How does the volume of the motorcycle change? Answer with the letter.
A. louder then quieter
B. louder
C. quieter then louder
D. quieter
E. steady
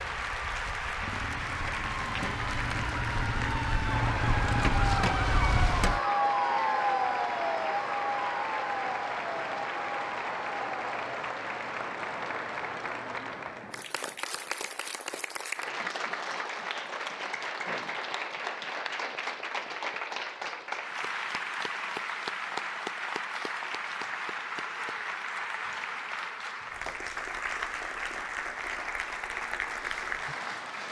B.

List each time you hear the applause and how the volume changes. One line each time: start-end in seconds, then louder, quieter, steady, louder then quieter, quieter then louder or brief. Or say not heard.
0.0-30.8 steady.